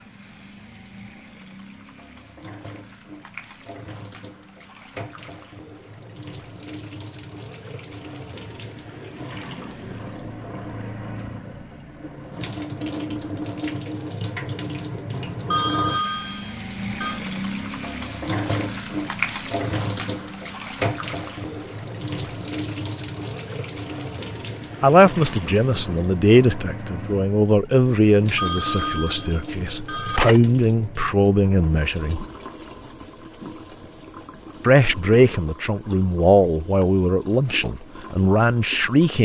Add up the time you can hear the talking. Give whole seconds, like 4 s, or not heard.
12 s.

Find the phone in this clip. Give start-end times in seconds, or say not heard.
15.5-17.2, 28.4-30.4.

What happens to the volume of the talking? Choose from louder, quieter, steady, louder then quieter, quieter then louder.
steady.